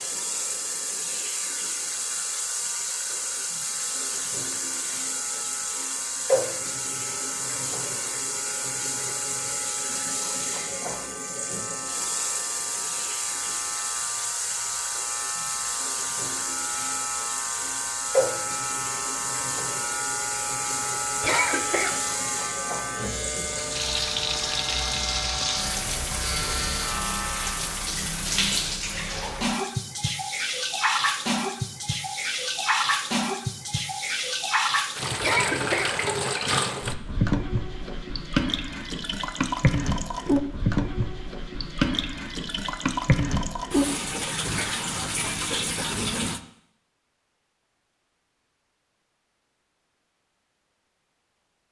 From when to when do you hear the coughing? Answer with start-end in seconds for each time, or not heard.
21.2-22.0, 35.2-36.0.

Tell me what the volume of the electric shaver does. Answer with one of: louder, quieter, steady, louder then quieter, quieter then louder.
louder.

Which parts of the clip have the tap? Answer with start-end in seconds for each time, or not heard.
0.0-46.4.